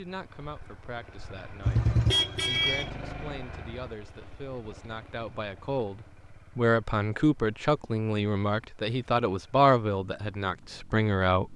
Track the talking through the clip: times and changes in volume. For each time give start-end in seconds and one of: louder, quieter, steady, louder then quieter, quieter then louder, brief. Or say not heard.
0.0-11.5 louder.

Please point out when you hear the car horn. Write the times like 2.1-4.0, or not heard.
1.6-2.9.